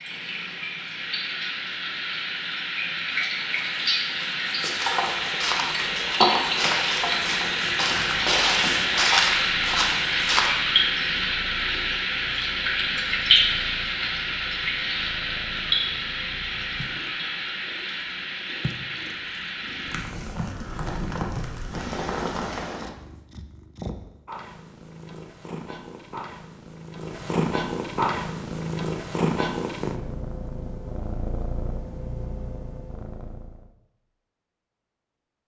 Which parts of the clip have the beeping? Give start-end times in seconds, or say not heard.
not heard.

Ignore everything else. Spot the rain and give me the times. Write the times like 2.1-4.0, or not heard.
0.0-22.9.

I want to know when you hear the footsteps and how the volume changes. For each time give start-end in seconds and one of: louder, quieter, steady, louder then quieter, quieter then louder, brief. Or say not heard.
3.1-10.5 louder.